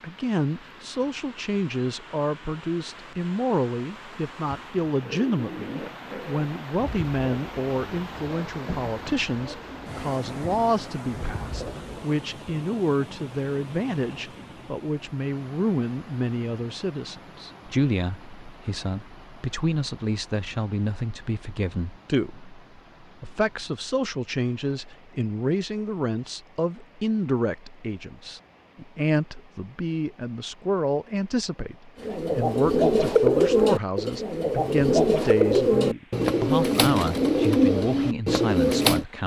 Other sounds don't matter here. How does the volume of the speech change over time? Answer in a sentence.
The volume of the speech stays about the same.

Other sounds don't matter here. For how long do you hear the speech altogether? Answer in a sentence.
The speech can be heard for 39 seconds in total.